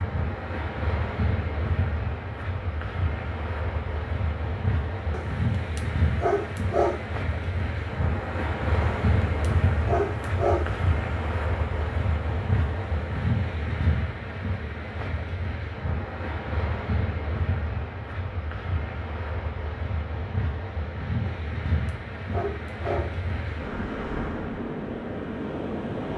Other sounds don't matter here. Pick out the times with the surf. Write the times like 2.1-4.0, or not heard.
0.0-26.1.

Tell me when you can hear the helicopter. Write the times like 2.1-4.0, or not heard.
not heard.